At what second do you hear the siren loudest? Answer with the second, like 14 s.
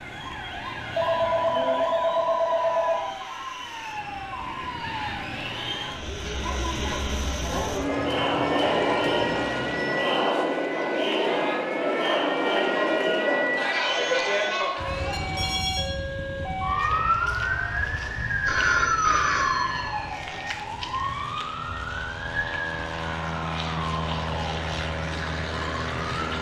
19 s.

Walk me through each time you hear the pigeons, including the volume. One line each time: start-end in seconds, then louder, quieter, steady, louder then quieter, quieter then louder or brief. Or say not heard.
not heard.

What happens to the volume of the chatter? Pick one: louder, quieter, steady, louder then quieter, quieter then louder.
louder.